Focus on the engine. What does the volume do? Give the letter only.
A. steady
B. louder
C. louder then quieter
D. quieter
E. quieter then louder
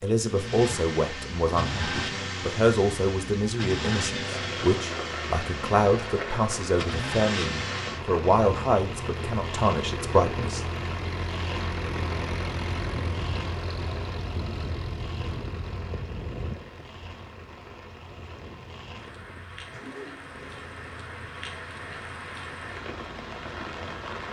D.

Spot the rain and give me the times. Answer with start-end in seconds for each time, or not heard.
4.2-24.2.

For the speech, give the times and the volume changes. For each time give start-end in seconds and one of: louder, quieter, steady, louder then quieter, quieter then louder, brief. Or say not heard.
0.0-10.8 steady.